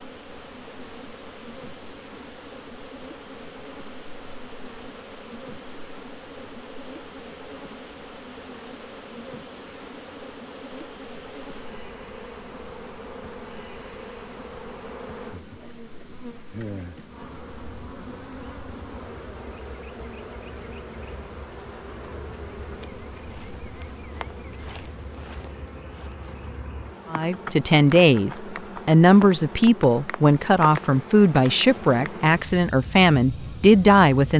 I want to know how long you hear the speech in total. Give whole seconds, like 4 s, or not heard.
7 s.